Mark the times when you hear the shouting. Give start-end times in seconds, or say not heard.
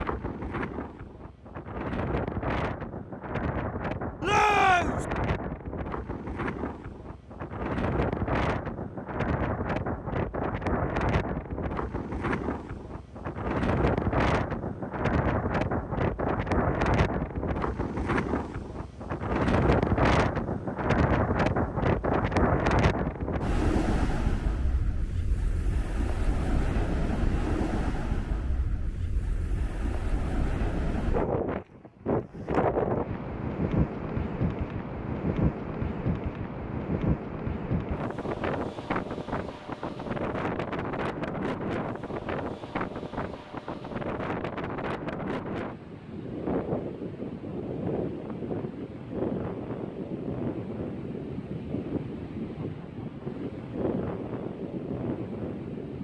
4.2-5.0.